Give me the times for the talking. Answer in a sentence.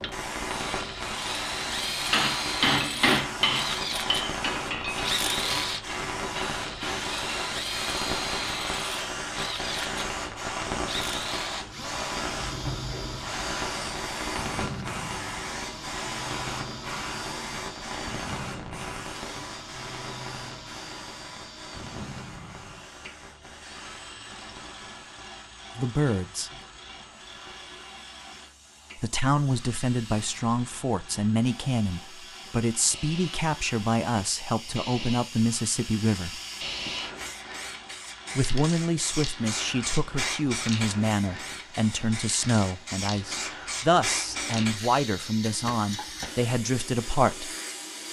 The talking can be heard from 25.8 to 26.5 s, from 28.9 to 36.4 s and from 38.4 to 47.5 s.